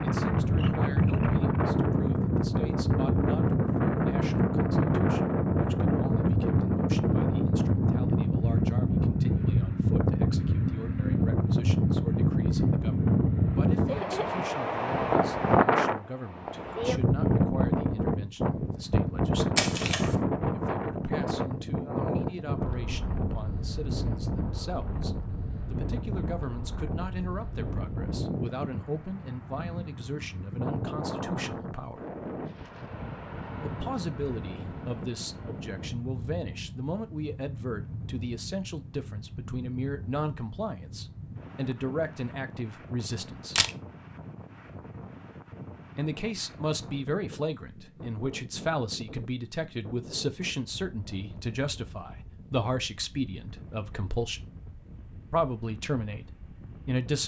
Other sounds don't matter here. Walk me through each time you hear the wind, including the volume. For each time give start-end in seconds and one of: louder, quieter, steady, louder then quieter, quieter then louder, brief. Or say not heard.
0.0-57.2 quieter.